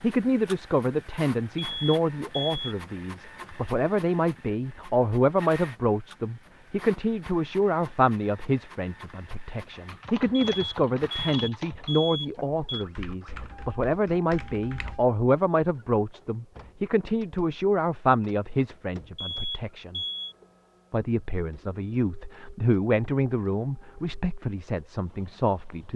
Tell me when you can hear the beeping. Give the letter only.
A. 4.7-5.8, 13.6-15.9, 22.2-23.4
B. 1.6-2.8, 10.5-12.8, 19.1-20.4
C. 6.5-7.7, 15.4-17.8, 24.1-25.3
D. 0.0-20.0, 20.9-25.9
B.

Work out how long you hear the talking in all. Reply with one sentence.
The talking can be heard for 25 seconds in total.